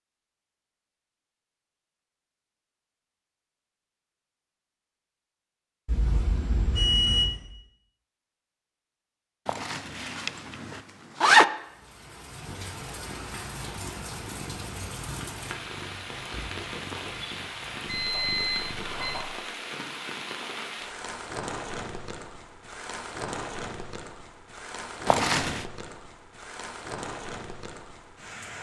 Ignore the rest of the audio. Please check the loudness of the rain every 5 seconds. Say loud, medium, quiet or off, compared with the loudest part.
off, off, loud, loud, loud, loud.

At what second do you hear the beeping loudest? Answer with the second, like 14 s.
7 s.